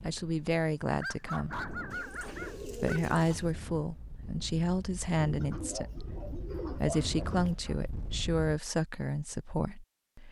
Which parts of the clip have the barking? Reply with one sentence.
The barking can be heard from 1.0 to 3.0 s and from 6.5 to 7.8 s.